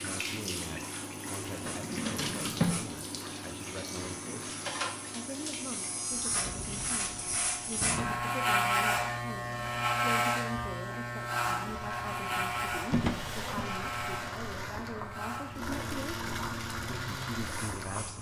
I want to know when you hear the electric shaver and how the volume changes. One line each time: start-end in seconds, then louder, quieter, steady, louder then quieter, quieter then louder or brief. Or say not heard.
0.0-18.1 louder then quieter.